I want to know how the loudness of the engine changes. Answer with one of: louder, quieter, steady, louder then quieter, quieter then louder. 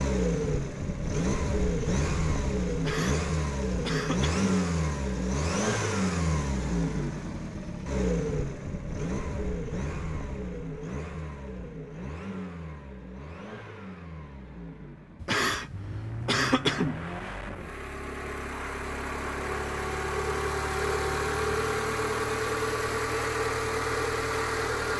quieter then louder.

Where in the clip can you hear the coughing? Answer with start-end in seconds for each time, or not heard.
2.8-4.5, 15.2-17.1.